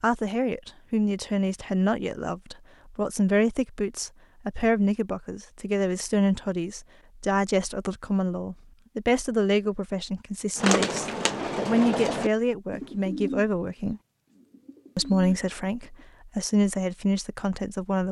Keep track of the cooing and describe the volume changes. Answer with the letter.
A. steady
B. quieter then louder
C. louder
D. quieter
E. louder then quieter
B.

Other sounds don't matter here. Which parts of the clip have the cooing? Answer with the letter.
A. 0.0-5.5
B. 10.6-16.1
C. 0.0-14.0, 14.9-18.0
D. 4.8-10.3
B.